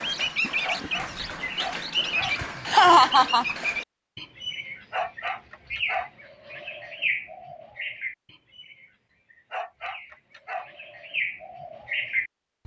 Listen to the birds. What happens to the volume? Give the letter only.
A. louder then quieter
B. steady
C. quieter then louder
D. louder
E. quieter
C.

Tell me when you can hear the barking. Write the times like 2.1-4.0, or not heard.
0.6-2.4, 4.9-6.1, 9.5-10.7.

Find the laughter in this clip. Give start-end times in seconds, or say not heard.
2.4-3.5.